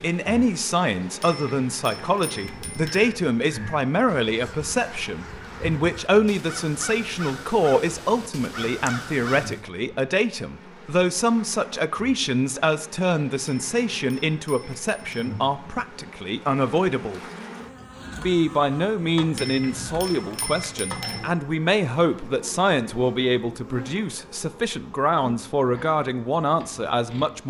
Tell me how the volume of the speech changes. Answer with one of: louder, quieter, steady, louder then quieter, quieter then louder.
steady.